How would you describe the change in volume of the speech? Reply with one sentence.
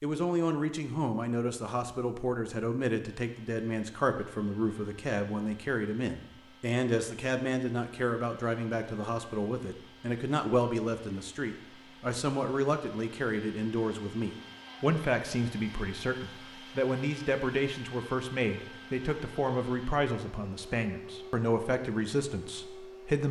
The volume of the speech stays about the same.